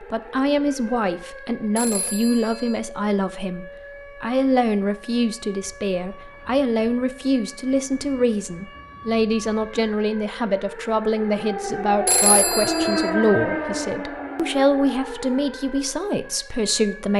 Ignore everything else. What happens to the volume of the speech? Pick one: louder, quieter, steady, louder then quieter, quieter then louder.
steady.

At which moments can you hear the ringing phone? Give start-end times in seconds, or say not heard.
1.8-2.8, 12.1-13.1.